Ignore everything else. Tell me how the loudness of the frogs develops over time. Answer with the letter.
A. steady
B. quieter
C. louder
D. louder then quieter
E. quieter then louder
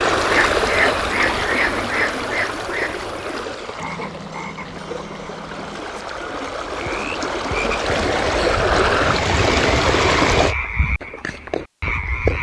E.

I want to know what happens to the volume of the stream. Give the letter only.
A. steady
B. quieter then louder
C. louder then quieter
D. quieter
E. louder
B.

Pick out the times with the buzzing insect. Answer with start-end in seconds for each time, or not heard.
not heard.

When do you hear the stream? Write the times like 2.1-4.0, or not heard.
0.0-10.6.